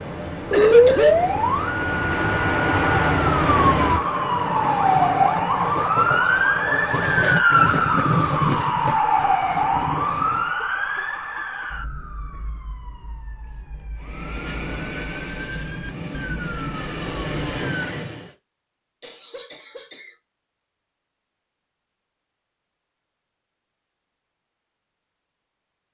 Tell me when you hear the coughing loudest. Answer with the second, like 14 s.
1 s.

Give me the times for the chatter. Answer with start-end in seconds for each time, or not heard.
not heard.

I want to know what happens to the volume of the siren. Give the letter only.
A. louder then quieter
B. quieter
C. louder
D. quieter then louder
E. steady
B.